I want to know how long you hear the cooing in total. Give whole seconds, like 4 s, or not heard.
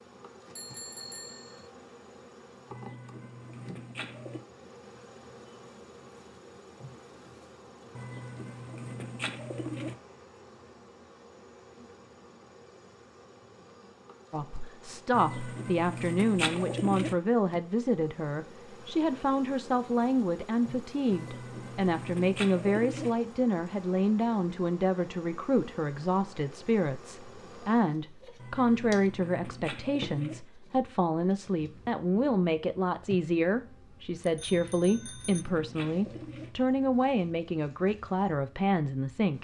12 s.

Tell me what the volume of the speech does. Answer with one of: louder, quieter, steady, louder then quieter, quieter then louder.
steady.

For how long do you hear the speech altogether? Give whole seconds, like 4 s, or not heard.
25 s.